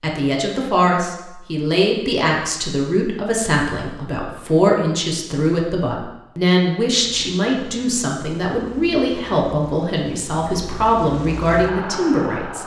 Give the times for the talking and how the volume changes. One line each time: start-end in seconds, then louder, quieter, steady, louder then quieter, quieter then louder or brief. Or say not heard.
0.0-12.6 steady.